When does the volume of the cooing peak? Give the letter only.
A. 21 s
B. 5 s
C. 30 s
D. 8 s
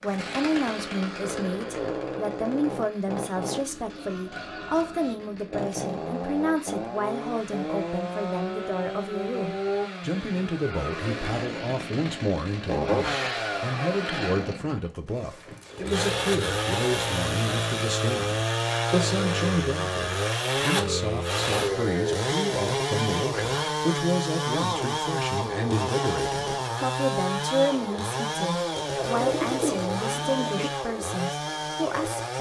C.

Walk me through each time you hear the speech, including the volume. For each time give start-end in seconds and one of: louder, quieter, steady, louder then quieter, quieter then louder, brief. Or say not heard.
0.0-32.3 steady.